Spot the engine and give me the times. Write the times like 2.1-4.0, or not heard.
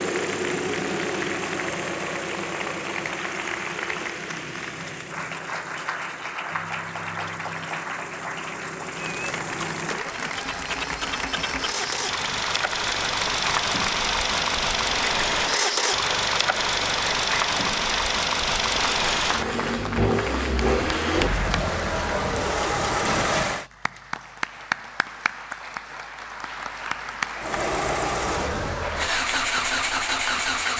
0.0-23.6, 27.4-30.7.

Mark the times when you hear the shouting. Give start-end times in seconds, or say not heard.
not heard.